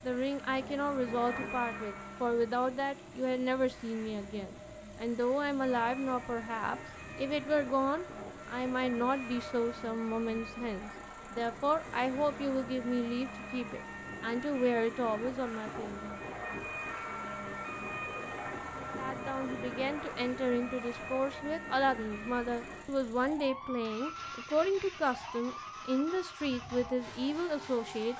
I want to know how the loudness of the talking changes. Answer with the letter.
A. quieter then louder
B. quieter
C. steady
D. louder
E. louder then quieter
C.